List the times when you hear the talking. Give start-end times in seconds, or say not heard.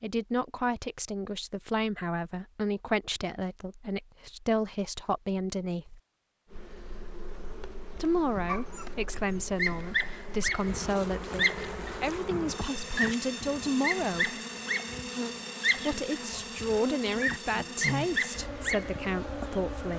0.0-6.0, 8.0-14.3, 15.8-19.9.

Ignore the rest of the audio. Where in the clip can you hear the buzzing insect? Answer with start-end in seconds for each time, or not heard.
6.5-19.9.